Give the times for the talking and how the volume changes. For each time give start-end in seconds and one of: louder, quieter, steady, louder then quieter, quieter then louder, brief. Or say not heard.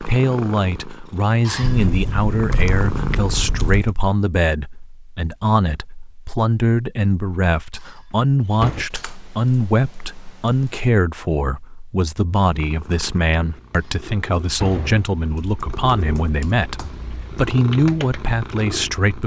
0.0-19.2 steady.